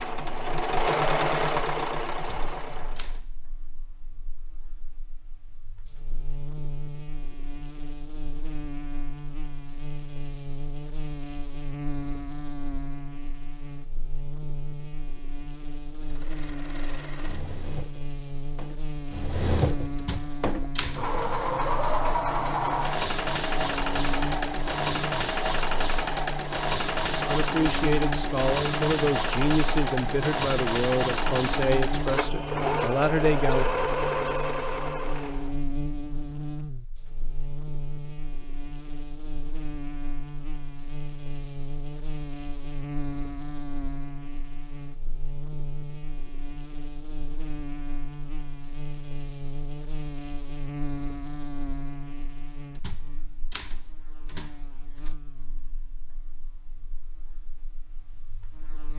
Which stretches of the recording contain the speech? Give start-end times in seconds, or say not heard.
27.1-33.6.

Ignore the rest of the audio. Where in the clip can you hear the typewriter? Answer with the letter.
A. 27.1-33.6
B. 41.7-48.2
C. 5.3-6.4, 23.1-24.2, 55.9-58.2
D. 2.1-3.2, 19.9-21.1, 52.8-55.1
D.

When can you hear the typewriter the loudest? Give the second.
21 s.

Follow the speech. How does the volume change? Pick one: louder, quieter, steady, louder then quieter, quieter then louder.
steady.